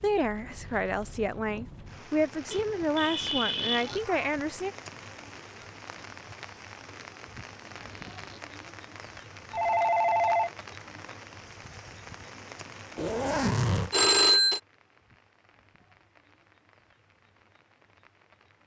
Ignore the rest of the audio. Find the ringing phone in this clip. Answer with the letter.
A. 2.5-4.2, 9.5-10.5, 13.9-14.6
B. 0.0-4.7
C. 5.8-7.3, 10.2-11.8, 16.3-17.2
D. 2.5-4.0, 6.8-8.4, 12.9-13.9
A.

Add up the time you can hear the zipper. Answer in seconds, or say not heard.
4 s.